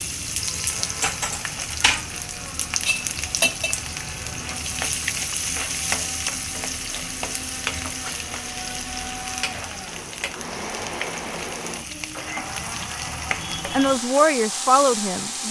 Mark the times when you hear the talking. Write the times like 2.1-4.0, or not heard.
13.7-15.4.